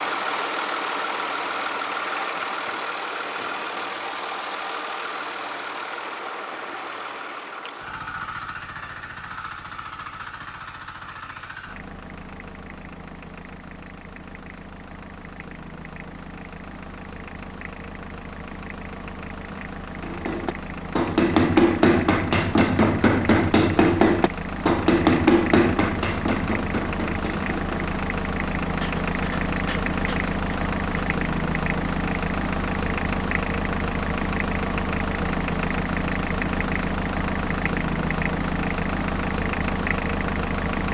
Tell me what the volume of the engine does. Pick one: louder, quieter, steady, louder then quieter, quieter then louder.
quieter then louder.